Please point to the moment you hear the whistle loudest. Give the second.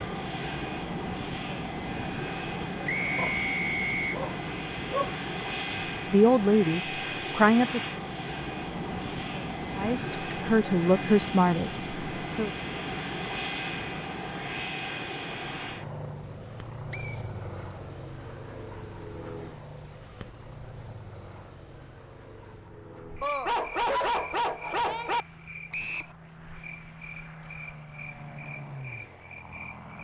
4 s.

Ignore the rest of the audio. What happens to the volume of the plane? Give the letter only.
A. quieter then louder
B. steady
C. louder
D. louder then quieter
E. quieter
E.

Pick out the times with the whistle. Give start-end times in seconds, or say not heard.
2.9-4.2, 16.9-17.3, 25.7-26.1.